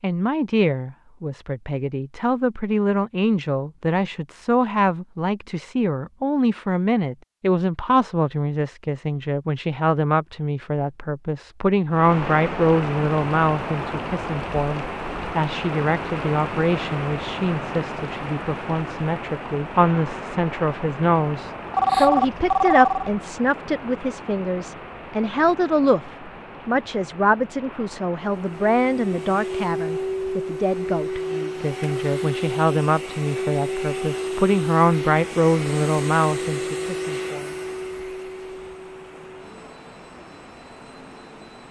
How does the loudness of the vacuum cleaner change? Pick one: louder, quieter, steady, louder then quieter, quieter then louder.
quieter.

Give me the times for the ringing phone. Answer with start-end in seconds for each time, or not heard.
21.7-23.1.